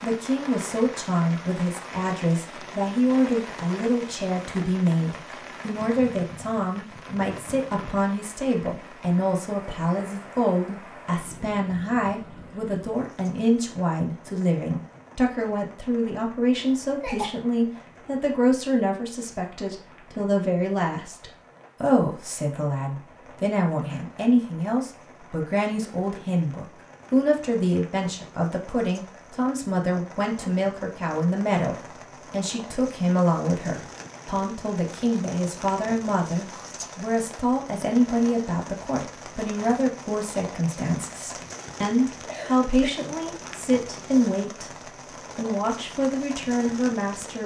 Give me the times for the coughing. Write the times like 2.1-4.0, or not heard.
16.6-17.4, 42.2-43.0.